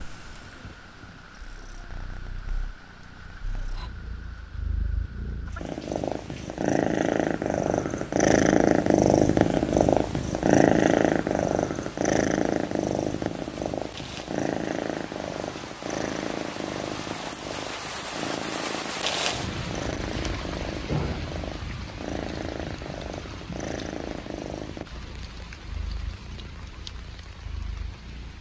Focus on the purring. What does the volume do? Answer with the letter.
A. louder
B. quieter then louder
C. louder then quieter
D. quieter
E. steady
C.